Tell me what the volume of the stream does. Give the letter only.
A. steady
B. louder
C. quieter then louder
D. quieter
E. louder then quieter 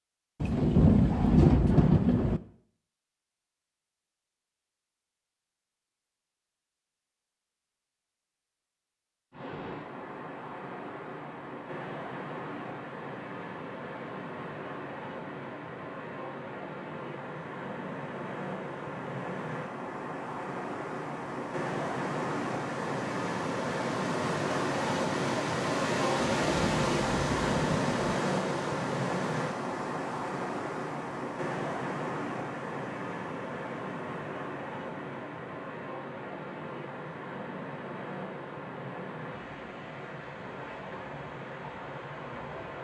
E.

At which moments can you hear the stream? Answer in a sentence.
You can hear the stream from 9.3 to 42.8 s.